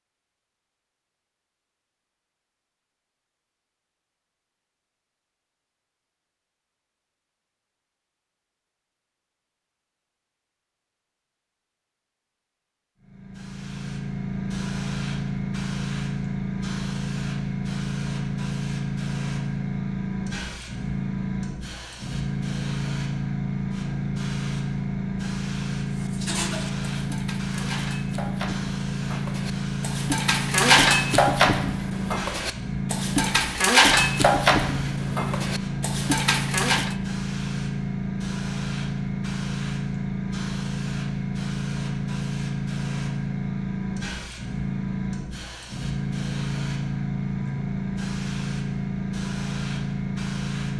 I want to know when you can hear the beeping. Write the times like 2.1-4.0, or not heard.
not heard.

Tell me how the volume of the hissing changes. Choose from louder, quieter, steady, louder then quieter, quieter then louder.
steady.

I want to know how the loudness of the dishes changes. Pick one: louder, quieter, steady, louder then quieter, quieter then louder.
louder then quieter.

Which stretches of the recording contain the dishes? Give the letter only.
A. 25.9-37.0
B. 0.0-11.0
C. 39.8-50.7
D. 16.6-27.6
A.